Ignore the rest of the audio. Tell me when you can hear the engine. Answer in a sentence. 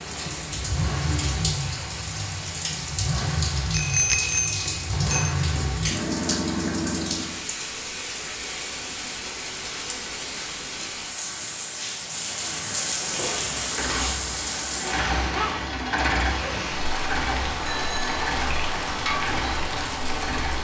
The engine can be heard from 0.0 to 7.4 s and from 12.9 to 20.5 s.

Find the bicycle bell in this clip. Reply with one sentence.
You can hear the bicycle bell from 3.7 to 5.3 s and from 17.6 to 18.2 s.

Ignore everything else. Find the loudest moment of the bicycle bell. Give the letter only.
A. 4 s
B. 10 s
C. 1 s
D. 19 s
A.